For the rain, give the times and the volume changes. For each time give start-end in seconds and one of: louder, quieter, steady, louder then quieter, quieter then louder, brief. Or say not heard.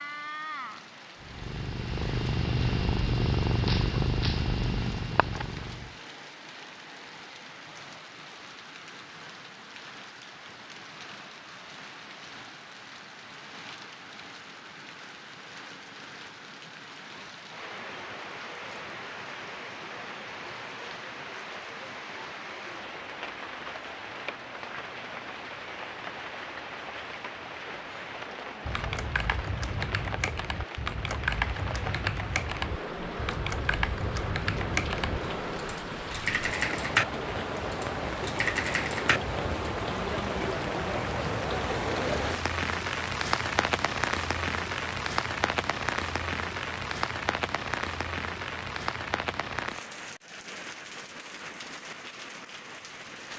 0.0-53.3 louder.